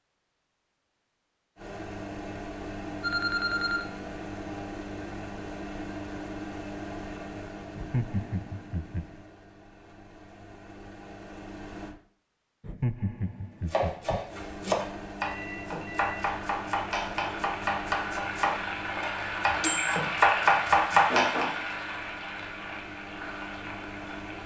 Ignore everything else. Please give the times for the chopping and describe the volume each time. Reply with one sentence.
You can hear the chopping from 13.7 to 21.5 s, getting louder.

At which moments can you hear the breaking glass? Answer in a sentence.
You can't hear the breaking glass here.